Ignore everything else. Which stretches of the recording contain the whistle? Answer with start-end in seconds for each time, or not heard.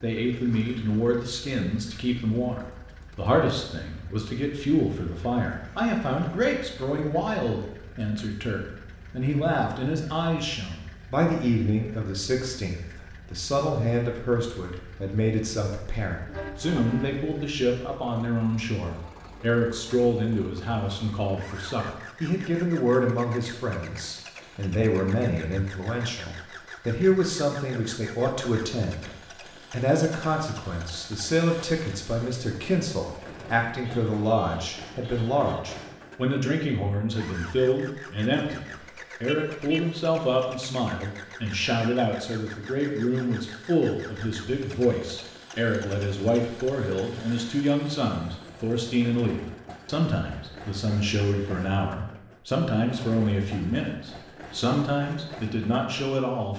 not heard.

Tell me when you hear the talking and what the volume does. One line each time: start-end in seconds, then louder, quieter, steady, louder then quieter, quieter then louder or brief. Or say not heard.
0.0-56.5 steady.